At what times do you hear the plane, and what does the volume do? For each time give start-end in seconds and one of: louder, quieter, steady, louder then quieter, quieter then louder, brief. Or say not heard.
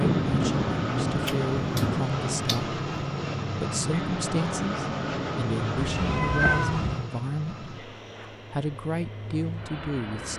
0.0-10.3 quieter.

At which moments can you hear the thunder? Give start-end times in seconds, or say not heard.
0.0-2.0.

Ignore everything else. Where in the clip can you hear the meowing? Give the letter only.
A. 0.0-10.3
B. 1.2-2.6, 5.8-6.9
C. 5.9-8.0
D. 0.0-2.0
B.